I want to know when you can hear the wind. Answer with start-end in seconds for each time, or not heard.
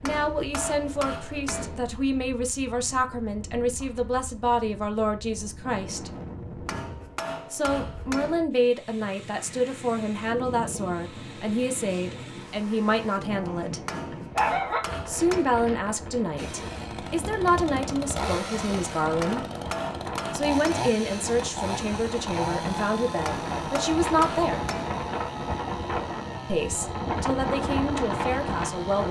0.0-29.0.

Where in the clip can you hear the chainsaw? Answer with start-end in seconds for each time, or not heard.
16.4-29.0.